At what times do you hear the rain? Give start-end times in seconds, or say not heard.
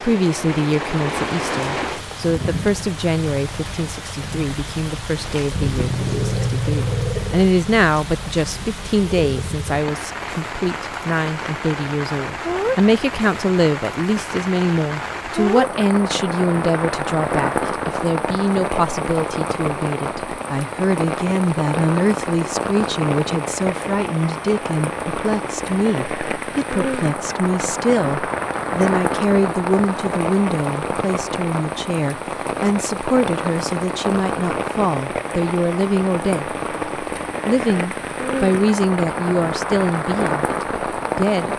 0.0-41.5.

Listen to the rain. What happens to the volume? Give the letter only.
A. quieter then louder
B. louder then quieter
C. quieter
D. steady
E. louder
D.